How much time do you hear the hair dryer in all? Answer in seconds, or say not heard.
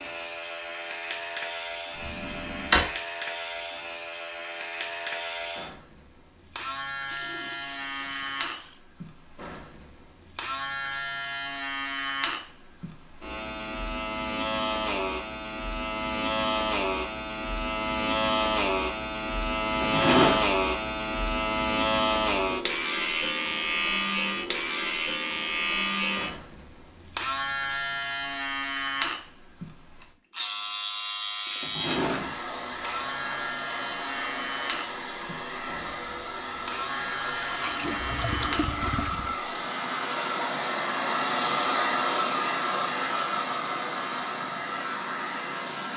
14 s.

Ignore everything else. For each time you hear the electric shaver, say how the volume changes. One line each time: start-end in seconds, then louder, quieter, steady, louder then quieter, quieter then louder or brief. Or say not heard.
0.0-45.9 louder then quieter.